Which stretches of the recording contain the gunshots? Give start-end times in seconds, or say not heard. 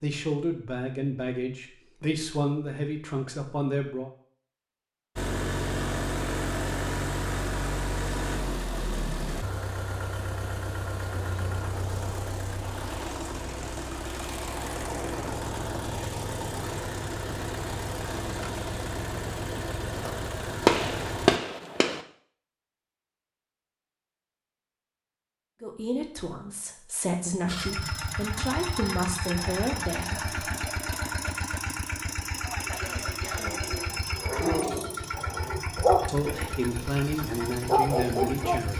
20.6-22.0.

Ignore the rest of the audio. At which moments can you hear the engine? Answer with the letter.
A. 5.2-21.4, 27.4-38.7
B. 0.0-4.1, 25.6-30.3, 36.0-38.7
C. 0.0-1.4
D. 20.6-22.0
A.